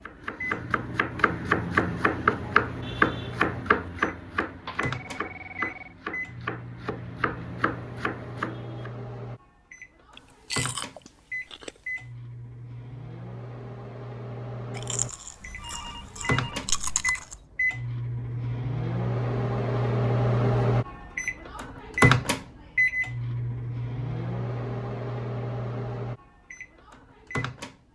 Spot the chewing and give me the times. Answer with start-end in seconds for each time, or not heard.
10.2-11.8, 14.7-17.4.